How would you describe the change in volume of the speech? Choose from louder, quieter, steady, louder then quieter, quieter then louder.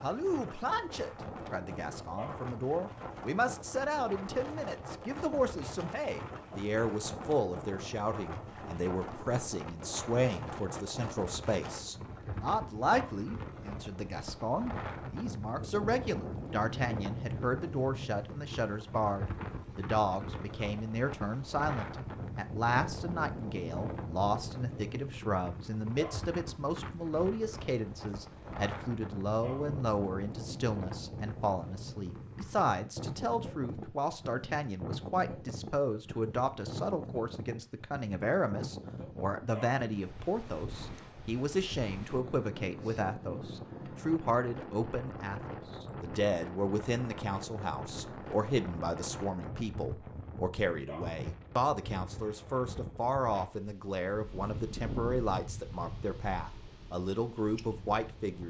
steady.